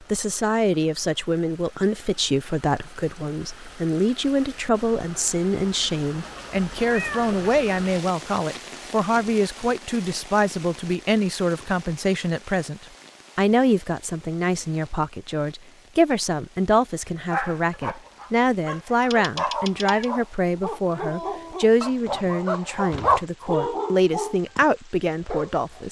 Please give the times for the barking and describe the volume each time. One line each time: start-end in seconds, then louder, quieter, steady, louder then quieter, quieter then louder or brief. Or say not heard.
17.3-25.8 louder then quieter.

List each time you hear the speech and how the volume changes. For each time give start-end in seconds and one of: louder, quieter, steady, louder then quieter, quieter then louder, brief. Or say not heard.
0.1-25.8 steady.